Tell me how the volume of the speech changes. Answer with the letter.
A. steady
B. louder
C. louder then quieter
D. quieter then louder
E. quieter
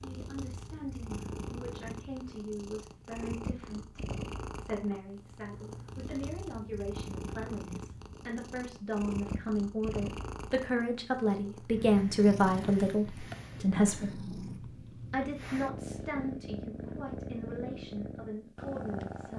C.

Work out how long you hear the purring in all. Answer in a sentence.
The purring can be heard for 19 seconds in total.